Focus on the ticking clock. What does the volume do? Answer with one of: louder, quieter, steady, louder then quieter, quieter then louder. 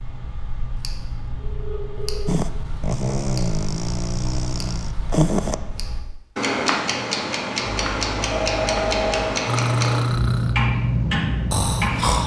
louder.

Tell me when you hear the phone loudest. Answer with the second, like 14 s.
9 s.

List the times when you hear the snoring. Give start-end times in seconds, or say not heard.
2.2-5.5, 9.4-12.2.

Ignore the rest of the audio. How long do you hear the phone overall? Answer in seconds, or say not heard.
3 s.